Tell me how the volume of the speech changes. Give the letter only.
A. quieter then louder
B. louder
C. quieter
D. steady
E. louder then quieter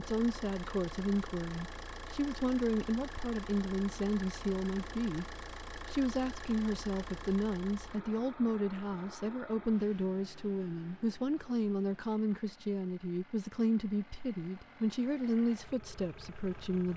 D.